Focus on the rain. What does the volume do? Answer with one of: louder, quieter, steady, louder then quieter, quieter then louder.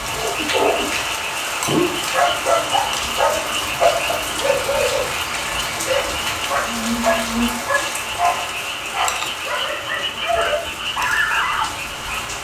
quieter.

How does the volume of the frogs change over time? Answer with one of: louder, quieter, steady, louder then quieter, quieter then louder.
steady.